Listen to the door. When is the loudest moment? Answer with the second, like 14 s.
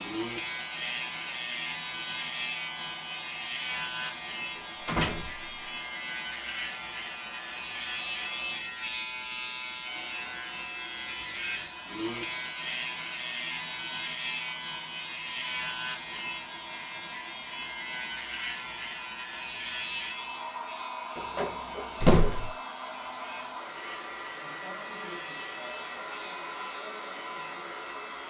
22 s.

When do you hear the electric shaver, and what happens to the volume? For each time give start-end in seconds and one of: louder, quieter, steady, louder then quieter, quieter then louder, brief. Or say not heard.
0.0-28.2 quieter.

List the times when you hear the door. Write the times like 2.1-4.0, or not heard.
4.8-5.5, 21.1-22.5.